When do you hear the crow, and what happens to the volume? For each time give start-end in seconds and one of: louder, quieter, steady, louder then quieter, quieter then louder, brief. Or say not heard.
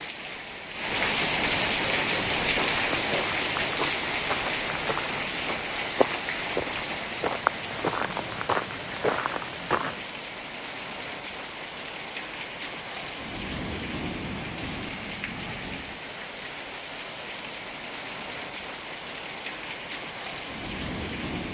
not heard.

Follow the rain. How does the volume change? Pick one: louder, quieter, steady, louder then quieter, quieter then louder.
quieter.